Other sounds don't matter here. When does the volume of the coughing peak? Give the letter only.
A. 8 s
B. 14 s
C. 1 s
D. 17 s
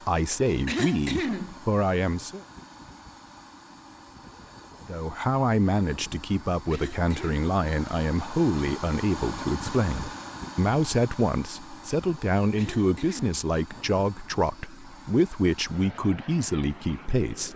C.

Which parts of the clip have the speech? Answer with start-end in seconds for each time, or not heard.
0.1-2.4, 4.8-17.5.